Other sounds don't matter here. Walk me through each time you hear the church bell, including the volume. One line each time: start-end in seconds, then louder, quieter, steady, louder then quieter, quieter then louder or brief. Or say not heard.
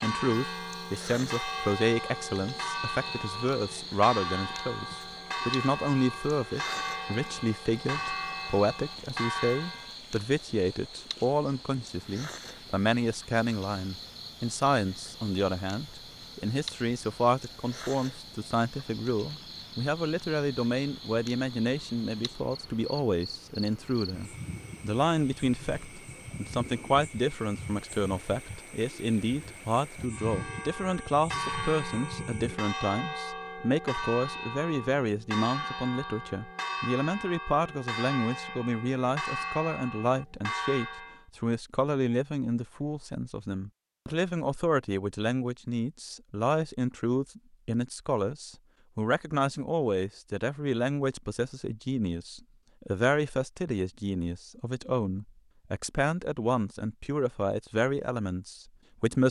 0.0-9.9 steady
30.1-41.2 steady.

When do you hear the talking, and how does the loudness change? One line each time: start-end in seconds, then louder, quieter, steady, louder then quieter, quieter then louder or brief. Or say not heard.
0.0-59.2 steady.